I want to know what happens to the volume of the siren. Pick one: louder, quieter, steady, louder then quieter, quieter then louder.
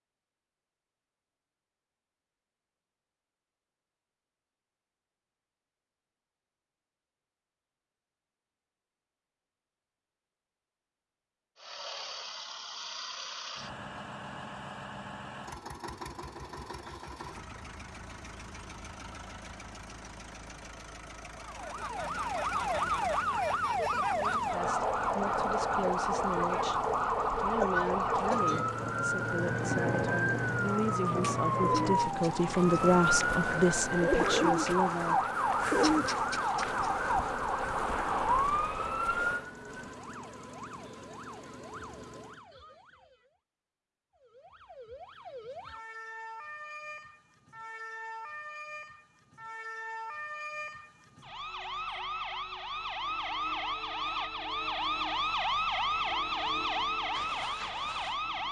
quieter then louder.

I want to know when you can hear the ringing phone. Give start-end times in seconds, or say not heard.
not heard.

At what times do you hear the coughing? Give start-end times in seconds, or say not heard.
27.4-28.8.